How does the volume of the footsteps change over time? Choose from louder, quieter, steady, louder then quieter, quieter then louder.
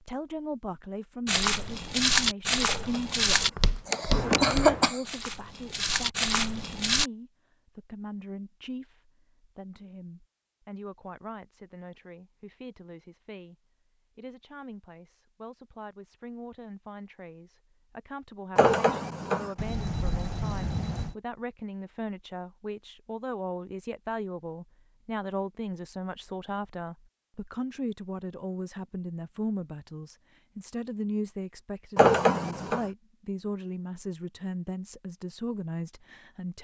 quieter then louder.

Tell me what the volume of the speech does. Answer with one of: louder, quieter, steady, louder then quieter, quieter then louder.
quieter then louder.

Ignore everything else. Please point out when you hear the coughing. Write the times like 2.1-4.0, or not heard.
2.6-5.0, 18.6-19.5, 31.9-32.9.